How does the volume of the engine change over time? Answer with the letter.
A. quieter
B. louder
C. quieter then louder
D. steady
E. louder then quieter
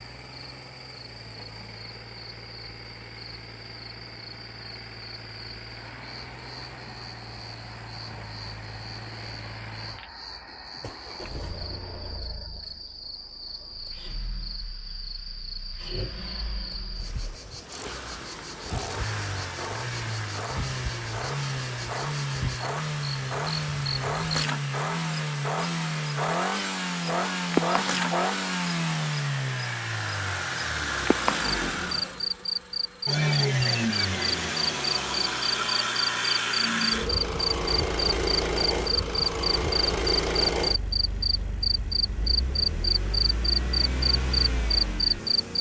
B.